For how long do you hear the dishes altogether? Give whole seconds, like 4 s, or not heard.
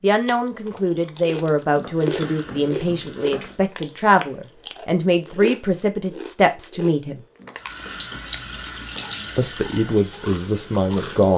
not heard.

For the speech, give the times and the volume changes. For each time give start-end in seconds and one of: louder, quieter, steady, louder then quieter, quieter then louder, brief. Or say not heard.
0.0-7.2 steady
9.3-11.3 brief.